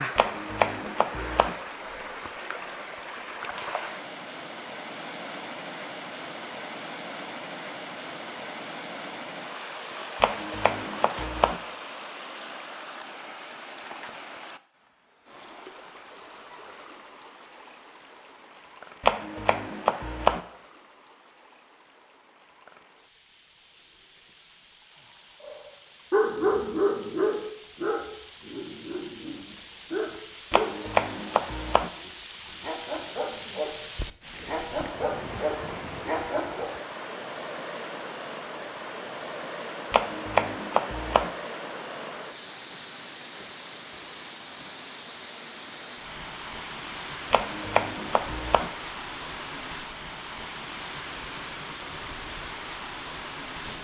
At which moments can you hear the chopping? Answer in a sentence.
The chopping can be heard from 0.1 to 1.6 s, from 10.2 to 11.6 s, from 19.0 to 20.4 s, from 30.5 to 31.9 s, from 39.9 to 41.3 s and from 47.3 to 48.7 s.